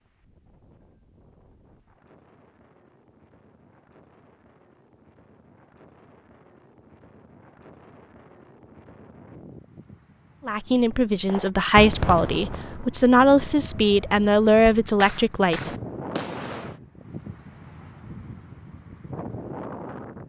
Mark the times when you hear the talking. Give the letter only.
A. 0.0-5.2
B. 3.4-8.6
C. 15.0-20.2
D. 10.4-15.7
D.